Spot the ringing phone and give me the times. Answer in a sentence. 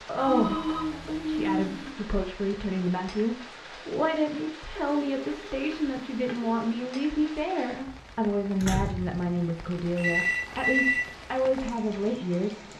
You can hear the ringing phone from 0.1 to 1.9 s, from 4.8 to 6.7 s and from 9.9 to 11.1 s.